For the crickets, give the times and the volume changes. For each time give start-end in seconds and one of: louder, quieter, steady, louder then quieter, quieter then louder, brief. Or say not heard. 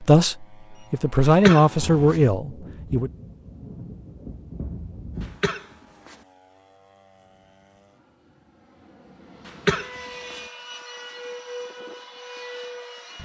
not heard.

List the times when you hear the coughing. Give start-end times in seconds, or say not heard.
1.2-2.2, 5.2-6.2, 9.4-10.4.